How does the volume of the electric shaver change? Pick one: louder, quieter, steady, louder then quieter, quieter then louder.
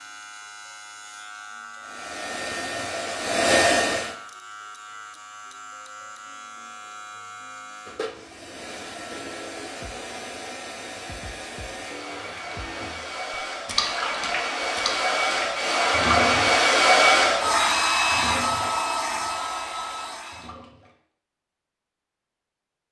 steady.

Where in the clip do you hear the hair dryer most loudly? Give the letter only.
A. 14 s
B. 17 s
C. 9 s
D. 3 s
B.